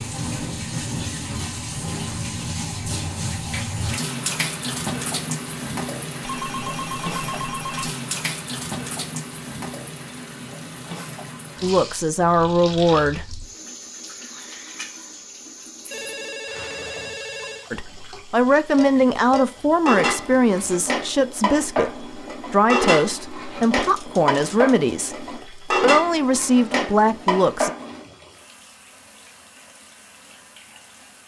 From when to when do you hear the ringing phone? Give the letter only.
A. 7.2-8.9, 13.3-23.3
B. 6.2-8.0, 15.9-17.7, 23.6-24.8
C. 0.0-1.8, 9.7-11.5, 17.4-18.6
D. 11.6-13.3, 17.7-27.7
B.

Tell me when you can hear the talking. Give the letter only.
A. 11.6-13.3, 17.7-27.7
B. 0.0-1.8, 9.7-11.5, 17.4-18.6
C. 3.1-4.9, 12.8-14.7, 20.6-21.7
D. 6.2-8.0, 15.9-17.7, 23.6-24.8
A.